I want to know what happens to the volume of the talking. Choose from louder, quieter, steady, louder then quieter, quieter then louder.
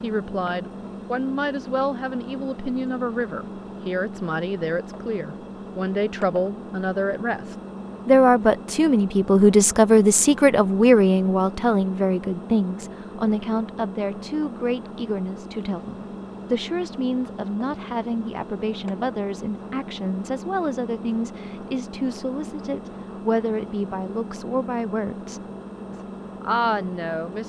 louder then quieter.